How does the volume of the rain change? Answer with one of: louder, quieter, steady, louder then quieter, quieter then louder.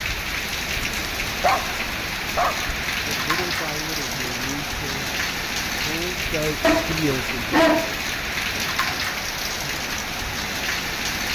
steady.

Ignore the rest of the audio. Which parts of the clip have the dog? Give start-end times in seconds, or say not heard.
1.1-2.8, 6.6-8.6.